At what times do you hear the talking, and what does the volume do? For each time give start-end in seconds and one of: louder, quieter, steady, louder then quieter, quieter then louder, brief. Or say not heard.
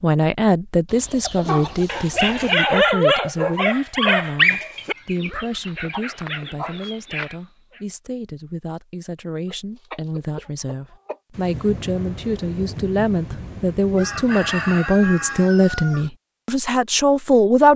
0.0-17.7 quieter then louder.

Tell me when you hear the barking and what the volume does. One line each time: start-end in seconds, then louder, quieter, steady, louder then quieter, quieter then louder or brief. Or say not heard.
1.4-7.8 quieter.